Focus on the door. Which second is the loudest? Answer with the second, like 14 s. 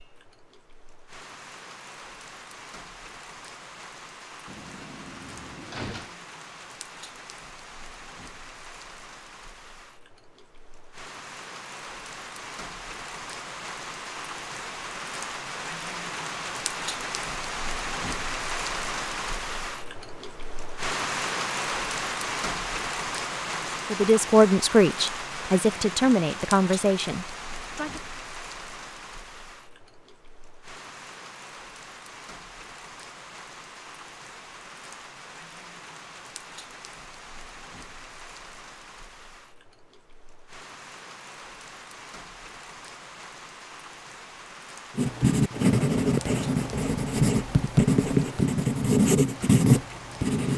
6 s.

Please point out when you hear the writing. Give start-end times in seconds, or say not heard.
45.0-50.5.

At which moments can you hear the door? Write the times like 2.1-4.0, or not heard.
4.5-6.2.